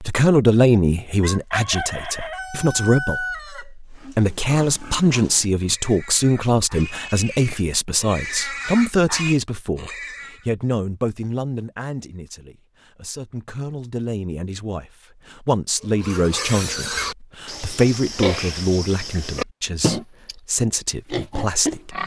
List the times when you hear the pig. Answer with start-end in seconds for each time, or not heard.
3.9-10.4, 15.8-20.4, 21.1-22.0.